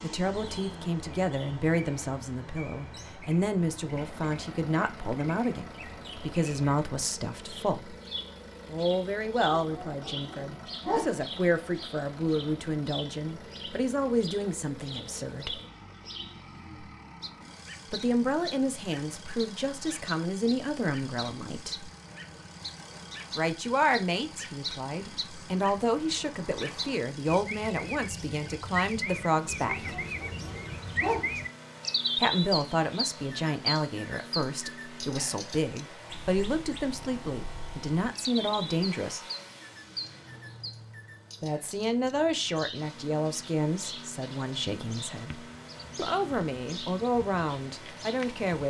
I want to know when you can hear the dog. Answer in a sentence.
You can hear the dog from 9.5 to 11.2 s and from 29.6 to 31.4 s.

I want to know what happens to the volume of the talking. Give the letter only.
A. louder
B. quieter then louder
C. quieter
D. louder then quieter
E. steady
E.